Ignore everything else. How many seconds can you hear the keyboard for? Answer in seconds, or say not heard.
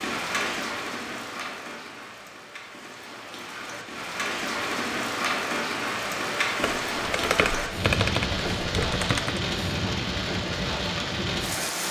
3 s.